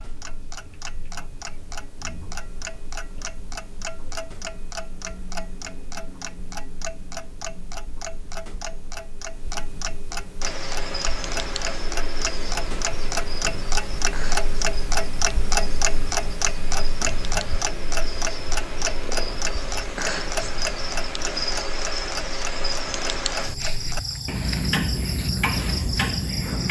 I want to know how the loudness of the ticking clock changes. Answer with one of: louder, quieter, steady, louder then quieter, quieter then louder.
louder.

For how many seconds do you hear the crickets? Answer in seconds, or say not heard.
16 s.